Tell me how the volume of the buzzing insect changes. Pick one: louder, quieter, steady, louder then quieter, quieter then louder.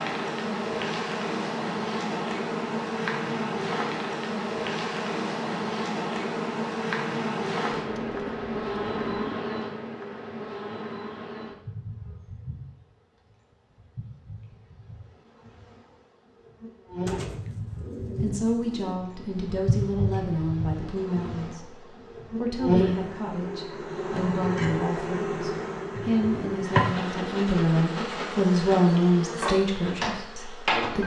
quieter then louder.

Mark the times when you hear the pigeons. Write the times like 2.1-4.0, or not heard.
7.8-9.4, 17.1-18.9.